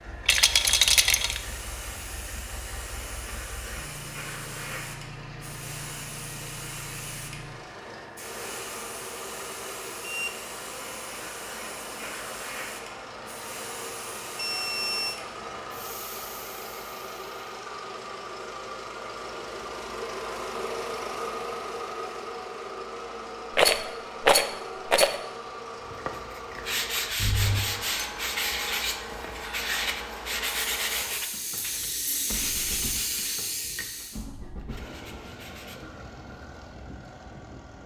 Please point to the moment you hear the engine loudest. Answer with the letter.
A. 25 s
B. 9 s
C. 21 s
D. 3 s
C.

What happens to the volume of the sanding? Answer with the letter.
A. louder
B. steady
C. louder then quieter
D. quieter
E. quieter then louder
D.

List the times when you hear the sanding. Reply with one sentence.
You can hear the sanding from 25.8 to 35.9 s.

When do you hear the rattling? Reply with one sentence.
You can hear the rattling from 0.2 to 1.4 s and from 23.6 to 25.1 s.